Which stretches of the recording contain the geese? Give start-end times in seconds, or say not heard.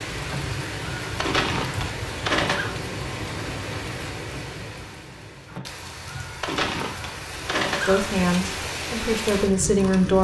0.2-2.8, 5.5-8.2.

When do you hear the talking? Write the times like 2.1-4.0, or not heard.
7.8-10.2.